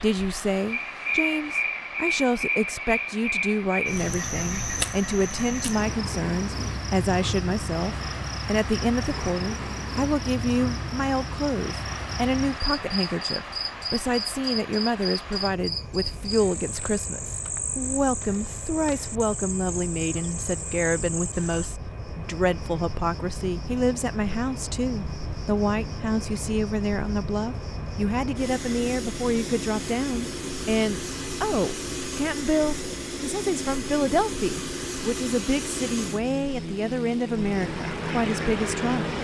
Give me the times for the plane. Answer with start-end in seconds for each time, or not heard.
0.0-39.1.